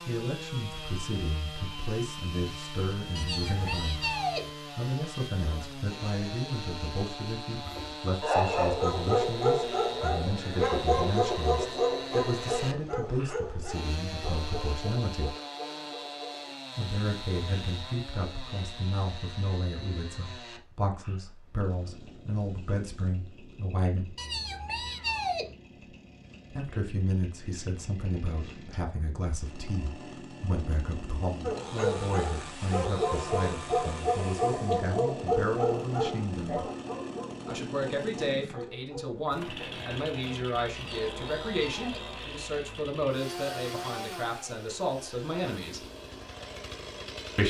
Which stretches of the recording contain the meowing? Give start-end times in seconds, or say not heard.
3.1-4.5, 24.1-25.6, 40.8-42.1.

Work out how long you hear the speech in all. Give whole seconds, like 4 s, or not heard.
41 s.